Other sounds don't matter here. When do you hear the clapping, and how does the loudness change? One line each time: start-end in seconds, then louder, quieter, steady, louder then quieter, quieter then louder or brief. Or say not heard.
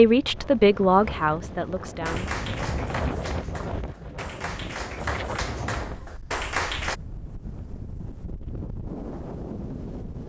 1.9-7.0 quieter then louder.